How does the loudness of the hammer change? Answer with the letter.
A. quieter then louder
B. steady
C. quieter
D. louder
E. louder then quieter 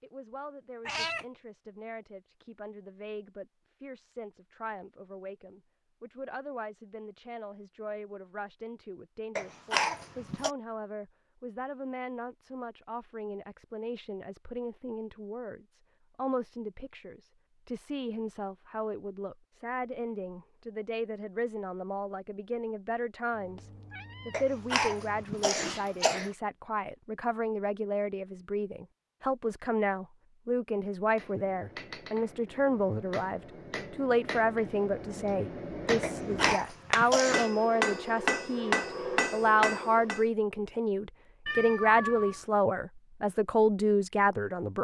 D.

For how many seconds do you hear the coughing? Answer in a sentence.
You can hear the coughing for 5 seconds altogether.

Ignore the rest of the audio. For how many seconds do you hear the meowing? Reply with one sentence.
The meowing can be heard for 3 seconds in total.